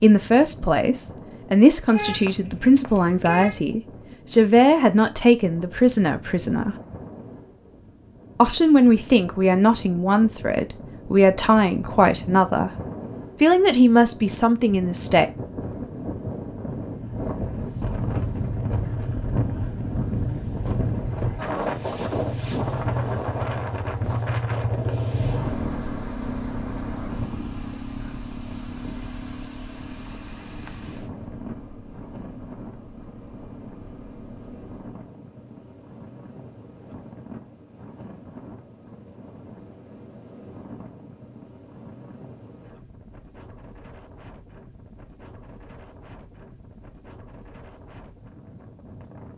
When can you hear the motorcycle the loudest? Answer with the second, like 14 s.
25 s.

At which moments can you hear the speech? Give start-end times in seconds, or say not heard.
0.0-6.8, 8.3-12.7, 13.4-15.2.